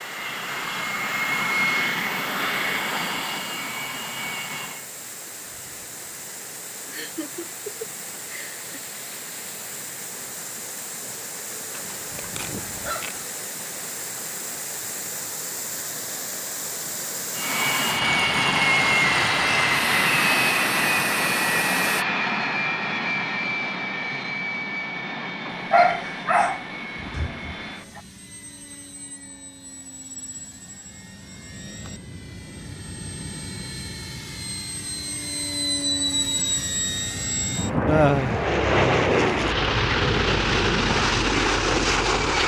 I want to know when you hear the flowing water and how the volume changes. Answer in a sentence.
The flowing water can be heard from 0.0 to 22.1 s, getting louder.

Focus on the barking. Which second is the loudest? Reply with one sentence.
The volume of the barking peaks at 26 seconds.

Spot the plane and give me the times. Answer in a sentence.
The plane can be heard from 0.0 to 4.8 s and from 17.4 to 42.4 s.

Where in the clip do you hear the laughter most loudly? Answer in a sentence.
The volume of the laughter peaks at 38 seconds.